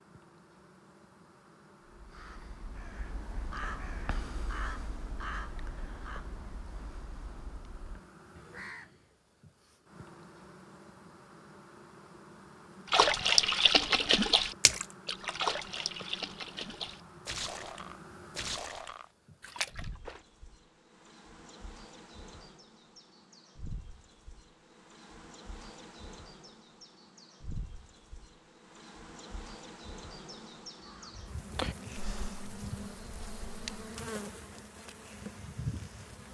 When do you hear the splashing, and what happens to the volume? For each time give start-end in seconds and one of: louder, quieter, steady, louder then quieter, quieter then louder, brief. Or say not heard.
12.9-20.2 quieter.